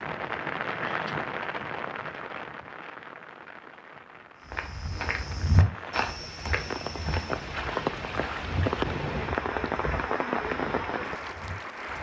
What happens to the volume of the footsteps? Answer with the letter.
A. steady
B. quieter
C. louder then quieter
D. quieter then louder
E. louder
B.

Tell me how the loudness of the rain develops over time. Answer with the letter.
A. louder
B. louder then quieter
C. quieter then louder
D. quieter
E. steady
C.